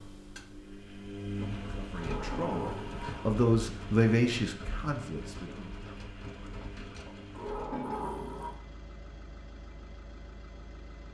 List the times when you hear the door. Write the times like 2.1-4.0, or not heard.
1.9-3.2, 7.3-8.6.